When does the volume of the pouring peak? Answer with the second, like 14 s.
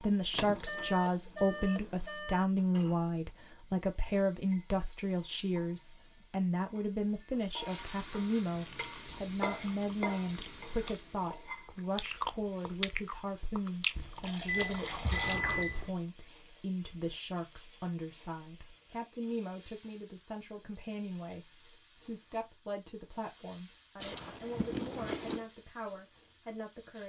15 s.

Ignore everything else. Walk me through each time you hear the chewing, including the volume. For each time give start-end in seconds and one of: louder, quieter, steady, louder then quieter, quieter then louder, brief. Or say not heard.
8.6-15.8 louder then quieter.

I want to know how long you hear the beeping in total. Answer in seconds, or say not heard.
5 s.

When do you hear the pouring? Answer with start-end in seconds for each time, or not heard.
13.9-15.4.